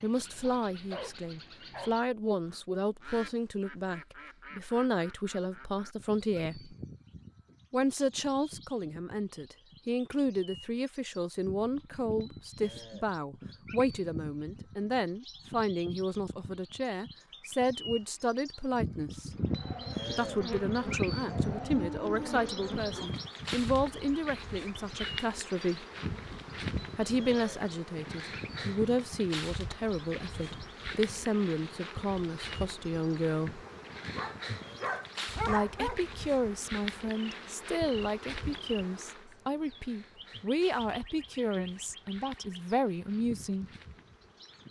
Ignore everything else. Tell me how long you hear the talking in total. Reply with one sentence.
You can hear the talking for 39 seconds altogether.